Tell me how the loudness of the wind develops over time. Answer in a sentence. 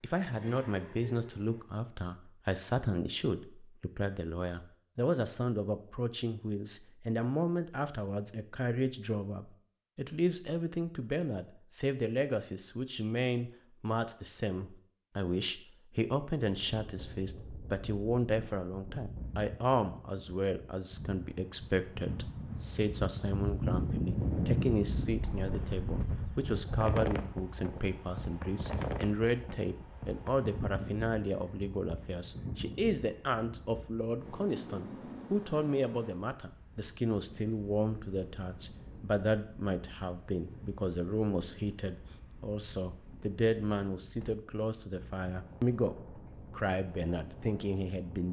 The volume of the wind goes up, then down.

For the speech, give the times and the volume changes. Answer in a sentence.
You can hear the speech from 0.0 to 48.2 s, at a steady volume.